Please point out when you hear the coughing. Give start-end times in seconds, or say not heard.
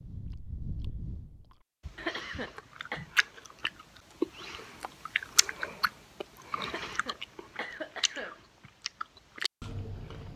1.9-3.0, 6.7-8.4.